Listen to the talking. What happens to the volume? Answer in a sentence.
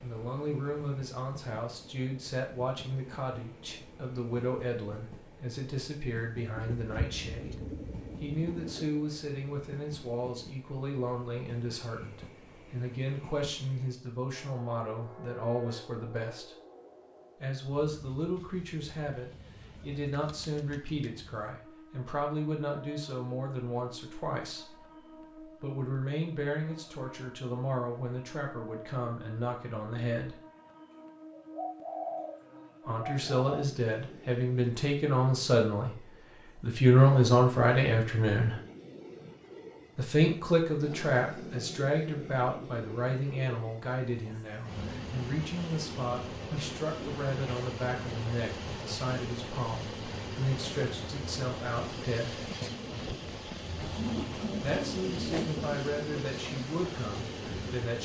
The loudness of the talking goes up, then down.